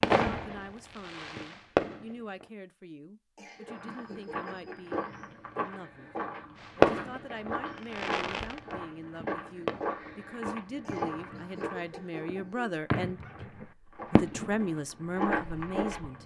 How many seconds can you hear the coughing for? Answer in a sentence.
You can hear the coughing for 3 seconds altogether.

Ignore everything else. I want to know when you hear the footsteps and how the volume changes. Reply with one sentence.
You can hear the footsteps from 3.6 to 12.2 s, at a steady volume; and briefly from 13.9 to 16.2 s.